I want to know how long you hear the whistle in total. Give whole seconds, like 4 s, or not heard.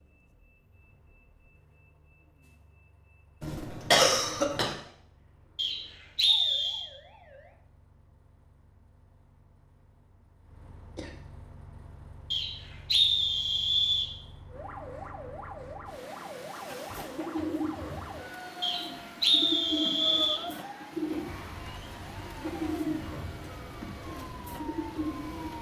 5 s.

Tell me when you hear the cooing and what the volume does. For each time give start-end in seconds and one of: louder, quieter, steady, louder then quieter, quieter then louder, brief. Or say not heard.
16.9-25.5 steady.